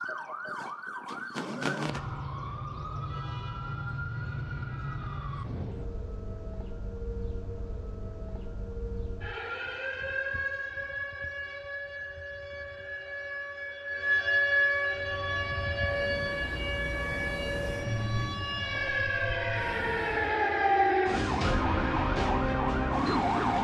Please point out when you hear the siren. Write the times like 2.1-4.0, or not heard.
0.0-23.5.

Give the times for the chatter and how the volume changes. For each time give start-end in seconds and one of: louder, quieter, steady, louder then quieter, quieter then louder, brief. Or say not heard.
not heard.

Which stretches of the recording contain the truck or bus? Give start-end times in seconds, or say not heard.
14.8-20.4.